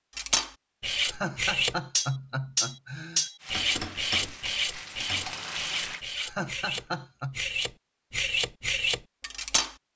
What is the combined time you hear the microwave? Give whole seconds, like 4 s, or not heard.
not heard.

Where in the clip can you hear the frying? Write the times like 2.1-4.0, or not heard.
3.4-6.0.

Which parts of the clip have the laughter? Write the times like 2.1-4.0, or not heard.
1.0-3.3, 6.2-7.4.